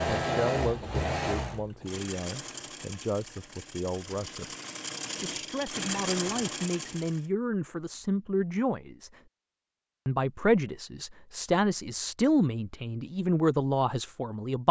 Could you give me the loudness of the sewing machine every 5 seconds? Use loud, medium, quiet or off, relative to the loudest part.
loud, loud, off.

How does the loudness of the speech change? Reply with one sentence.
The loudness of the speech goes up.